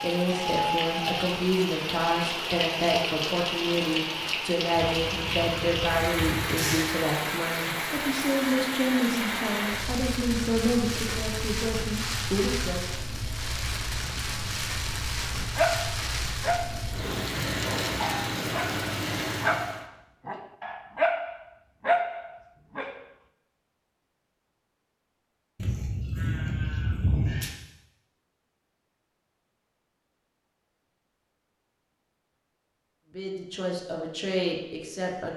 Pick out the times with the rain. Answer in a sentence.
The rain can be heard from 0.0 to 19.9 s.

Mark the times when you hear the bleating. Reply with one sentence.
You can hear the bleating from 4.8 to 7.0 s and from 25.6 to 27.5 s.